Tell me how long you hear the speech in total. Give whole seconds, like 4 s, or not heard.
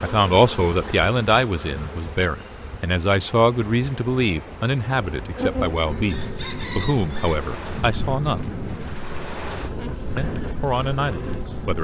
10 s.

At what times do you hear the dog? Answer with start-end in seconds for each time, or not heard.
not heard.